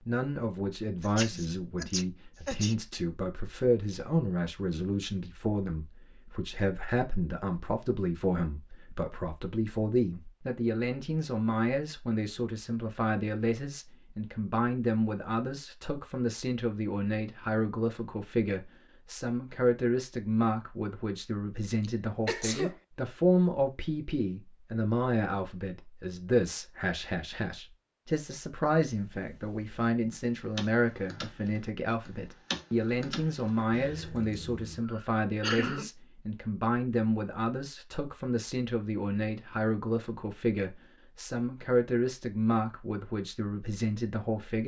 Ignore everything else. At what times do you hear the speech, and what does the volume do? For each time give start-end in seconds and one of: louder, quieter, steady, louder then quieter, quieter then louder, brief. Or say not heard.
0.1-44.6 steady.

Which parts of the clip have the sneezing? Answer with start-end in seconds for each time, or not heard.
1.0-2.8, 21.8-22.8, 34.9-35.9.